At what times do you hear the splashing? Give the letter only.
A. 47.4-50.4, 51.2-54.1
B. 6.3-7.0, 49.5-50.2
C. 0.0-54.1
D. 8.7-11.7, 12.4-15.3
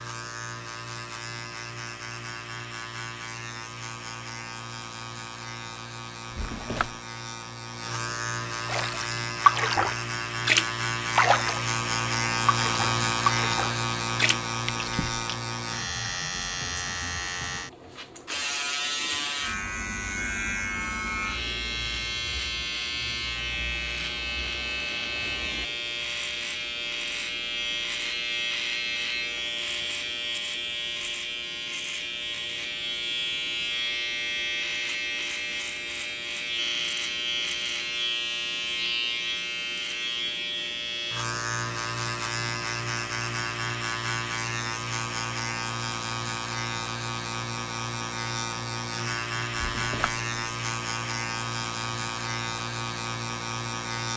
D.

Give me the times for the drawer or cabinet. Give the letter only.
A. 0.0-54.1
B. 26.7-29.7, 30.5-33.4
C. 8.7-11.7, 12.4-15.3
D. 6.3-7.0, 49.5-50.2
D.